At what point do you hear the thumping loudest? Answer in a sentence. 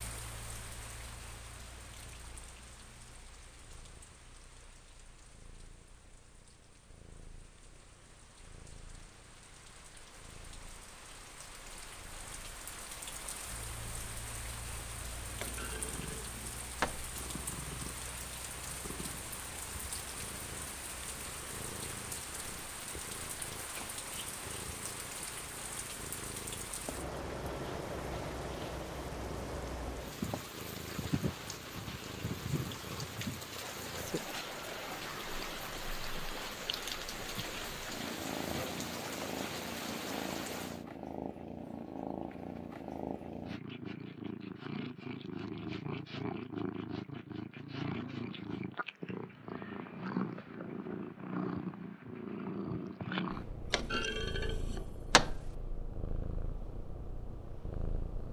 The volume of the thumping peaks at 55 seconds.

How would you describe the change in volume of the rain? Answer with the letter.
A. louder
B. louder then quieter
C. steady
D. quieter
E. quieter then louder
A.